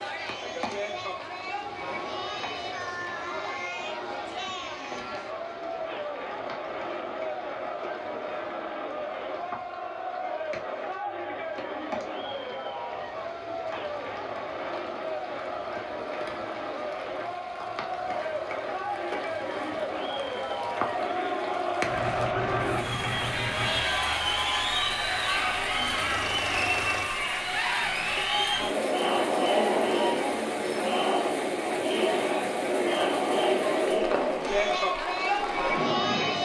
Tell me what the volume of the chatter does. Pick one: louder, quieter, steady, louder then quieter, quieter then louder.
louder.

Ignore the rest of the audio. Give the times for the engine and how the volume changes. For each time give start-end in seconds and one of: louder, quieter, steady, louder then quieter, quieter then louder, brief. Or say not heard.
21.9-27.1 quieter then louder.